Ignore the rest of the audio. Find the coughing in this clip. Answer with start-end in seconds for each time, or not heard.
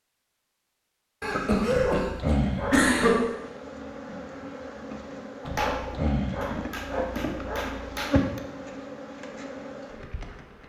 1.2-3.2.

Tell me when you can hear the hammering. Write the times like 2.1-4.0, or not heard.
5.4-8.4.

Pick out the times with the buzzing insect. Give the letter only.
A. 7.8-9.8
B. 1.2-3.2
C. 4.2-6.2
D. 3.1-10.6
D.